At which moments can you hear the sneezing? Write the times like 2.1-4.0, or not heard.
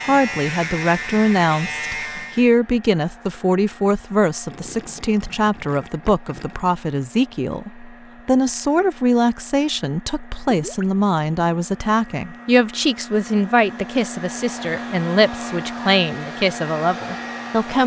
not heard.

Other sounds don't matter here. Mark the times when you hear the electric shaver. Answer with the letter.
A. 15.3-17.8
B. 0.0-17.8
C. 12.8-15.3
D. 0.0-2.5
D.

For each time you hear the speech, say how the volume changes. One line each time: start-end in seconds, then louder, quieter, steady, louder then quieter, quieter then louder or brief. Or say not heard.
0.0-17.8 steady.